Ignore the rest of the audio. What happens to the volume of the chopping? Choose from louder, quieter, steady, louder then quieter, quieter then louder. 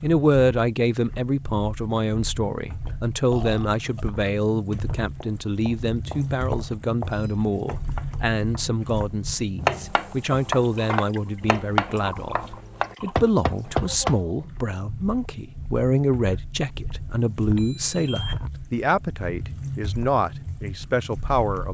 louder.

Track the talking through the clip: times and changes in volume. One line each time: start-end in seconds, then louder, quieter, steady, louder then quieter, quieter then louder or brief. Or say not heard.
0.0-21.6 steady.